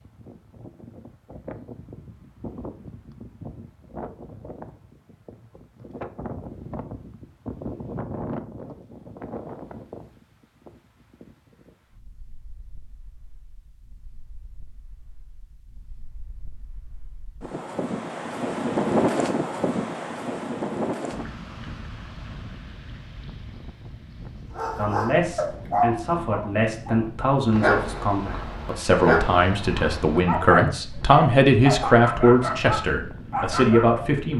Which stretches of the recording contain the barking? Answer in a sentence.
The barking can be heard from 24.6 to 34.0 s.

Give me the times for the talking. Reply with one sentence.
The talking can be heard from 24.8 to 34.3 s.